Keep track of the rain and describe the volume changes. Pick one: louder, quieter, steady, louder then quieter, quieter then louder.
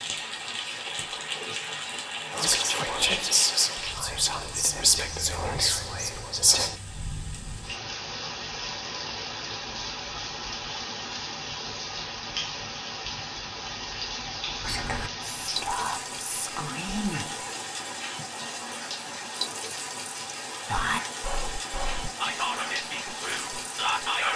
steady.